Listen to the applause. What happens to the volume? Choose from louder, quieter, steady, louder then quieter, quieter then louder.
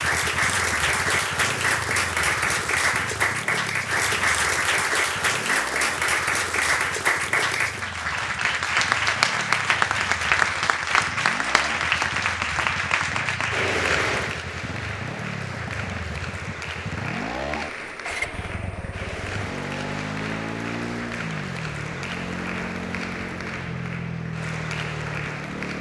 quieter.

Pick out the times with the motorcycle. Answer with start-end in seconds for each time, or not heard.
0.0-25.7.